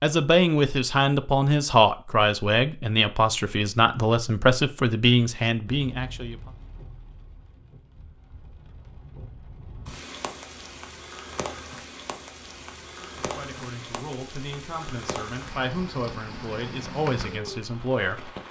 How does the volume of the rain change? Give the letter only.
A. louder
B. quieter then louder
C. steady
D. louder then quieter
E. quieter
A.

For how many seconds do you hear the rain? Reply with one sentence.
The rain can be heard for 13 seconds in total.